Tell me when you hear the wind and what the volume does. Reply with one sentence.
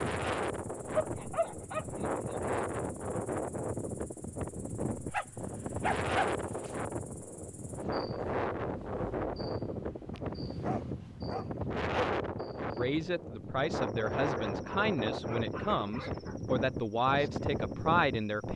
The wind can be heard from 0.0 to 18.5 s, at a steady volume.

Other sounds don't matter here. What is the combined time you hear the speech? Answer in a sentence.
The speech can be heard for 6 seconds in total.